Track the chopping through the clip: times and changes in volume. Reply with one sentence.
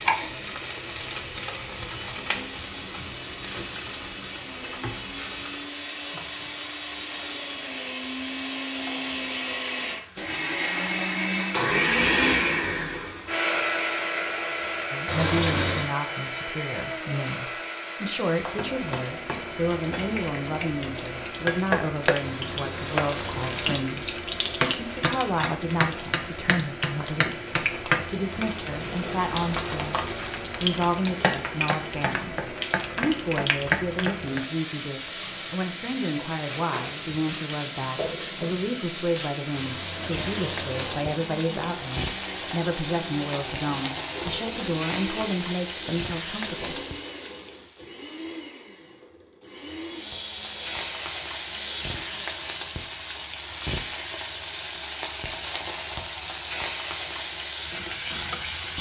You can't hear the chopping here.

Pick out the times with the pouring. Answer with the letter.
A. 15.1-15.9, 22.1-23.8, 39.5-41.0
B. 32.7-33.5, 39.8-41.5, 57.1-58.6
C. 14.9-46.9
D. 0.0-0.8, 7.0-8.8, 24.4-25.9
A.